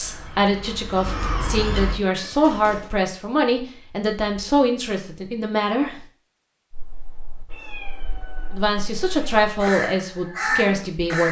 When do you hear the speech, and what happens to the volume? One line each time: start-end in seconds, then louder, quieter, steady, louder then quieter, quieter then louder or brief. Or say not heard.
0.0-6.0 steady
8.5-11.2 brief.